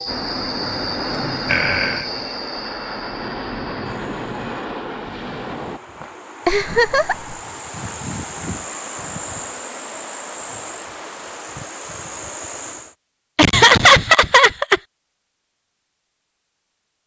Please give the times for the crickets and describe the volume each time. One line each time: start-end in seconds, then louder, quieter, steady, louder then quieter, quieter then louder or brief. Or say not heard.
0.0-12.9 quieter then louder.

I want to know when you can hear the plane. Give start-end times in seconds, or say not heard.
0.0-5.8.